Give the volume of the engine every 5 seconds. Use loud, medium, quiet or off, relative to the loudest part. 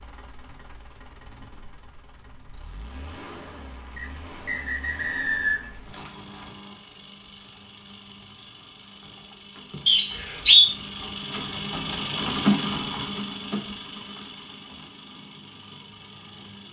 quiet, quiet, loud, quiet.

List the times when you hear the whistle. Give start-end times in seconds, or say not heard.
4.0-5.8, 9.8-10.8.